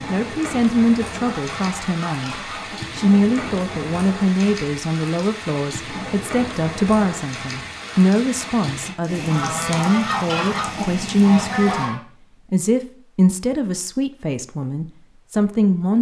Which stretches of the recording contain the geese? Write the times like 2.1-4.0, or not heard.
1.2-3.0, 9.2-12.0.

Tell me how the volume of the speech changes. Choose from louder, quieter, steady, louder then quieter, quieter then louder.
steady.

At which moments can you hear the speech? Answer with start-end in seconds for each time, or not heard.
0.1-15.9.